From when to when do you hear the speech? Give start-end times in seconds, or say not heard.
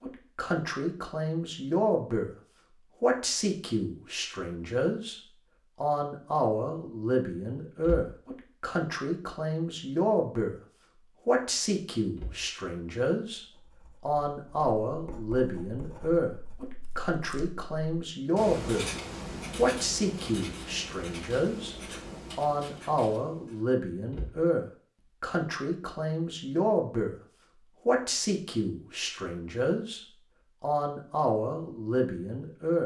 0.0-2.3, 3.0-5.2, 5.8-10.6, 11.2-18.9, 19.6-27.1, 27.9-32.8.